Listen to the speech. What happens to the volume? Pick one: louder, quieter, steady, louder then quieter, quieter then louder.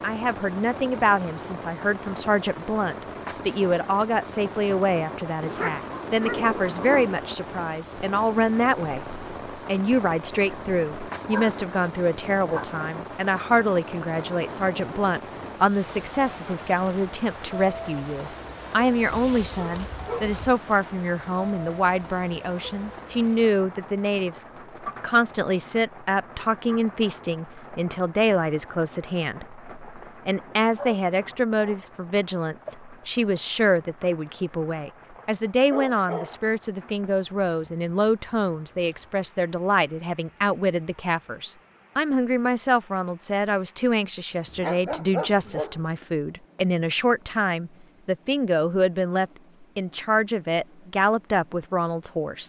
steady.